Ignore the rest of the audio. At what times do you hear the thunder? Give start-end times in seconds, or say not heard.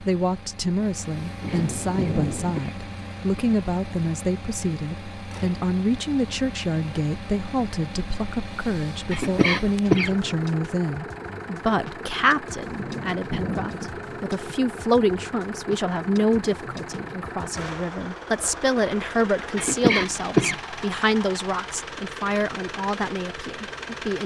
1.4-2.7, 12.8-14.1.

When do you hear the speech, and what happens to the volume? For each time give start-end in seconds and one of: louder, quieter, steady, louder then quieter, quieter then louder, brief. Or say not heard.
0.0-24.2 steady.